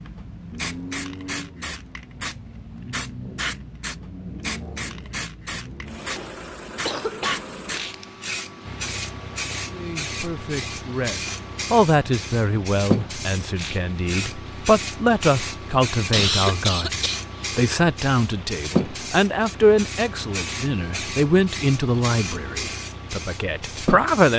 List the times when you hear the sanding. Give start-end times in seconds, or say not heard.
not heard.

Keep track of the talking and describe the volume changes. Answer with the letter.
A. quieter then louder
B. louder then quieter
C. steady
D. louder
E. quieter
C.